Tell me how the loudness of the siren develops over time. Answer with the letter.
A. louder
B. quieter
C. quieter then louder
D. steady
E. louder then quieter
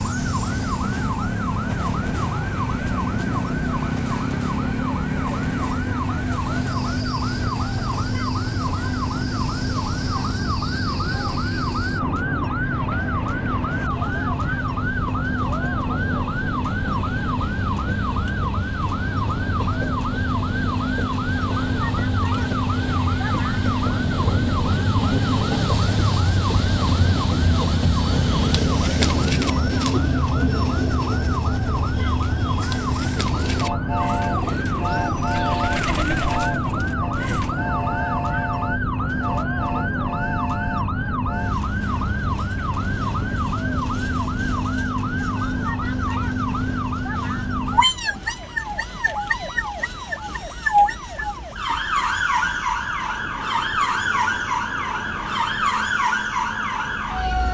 D.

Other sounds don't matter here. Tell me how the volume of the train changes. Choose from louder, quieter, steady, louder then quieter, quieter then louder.
louder then quieter.